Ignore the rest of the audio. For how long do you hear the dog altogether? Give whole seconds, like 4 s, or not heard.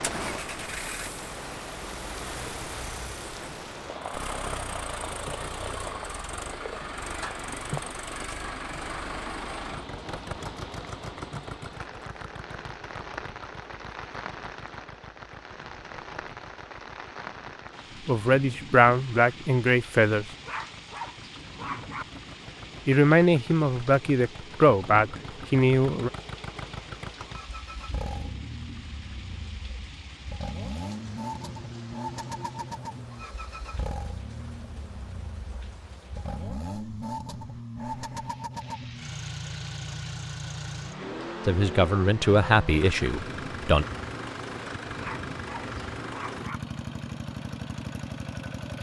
3 s.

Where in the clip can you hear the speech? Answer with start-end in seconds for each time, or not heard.
18.1-20.3, 22.9-26.1, 41.5-43.9.